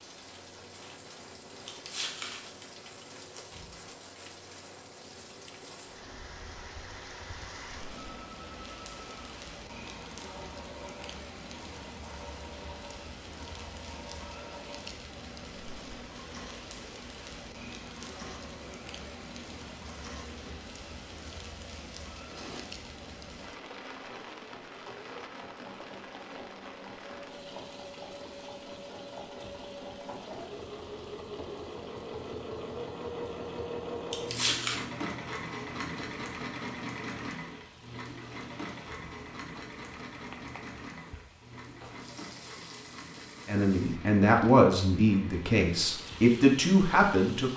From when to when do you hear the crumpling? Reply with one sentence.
The crumpling can be heard from 1.6 to 3.7 s and from 34.1 to 34.8 s.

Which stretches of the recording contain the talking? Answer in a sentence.
The talking can be heard from 43.5 to 47.5 s.